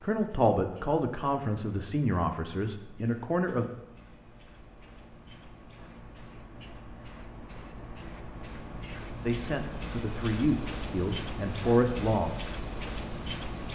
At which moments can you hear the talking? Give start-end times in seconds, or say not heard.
0.0-3.6, 9.2-12.3.